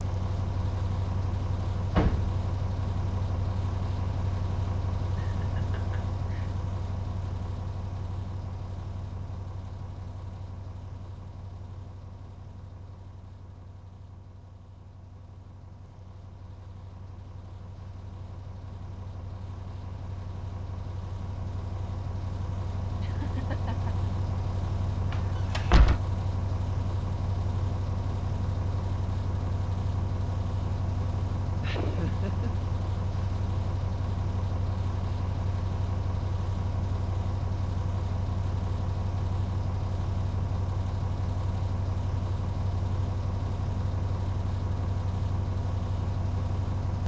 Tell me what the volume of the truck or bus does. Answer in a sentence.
The volume of the truck or bus goes down, then up.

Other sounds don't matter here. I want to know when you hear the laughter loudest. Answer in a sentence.
The loudest moment of the laughter is at 32 seconds.